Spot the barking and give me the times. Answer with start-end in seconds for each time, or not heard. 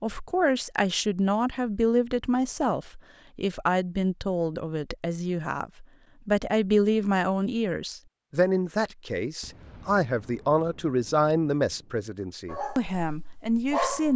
12.4-14.1.